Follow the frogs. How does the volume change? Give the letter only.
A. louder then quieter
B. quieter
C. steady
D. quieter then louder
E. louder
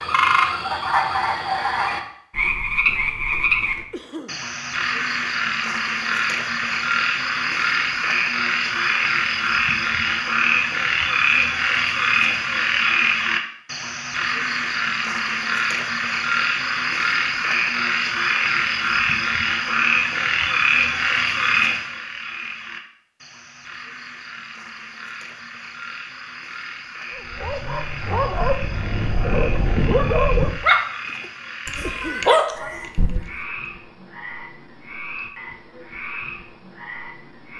B.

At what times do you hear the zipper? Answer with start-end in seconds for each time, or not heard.
not heard.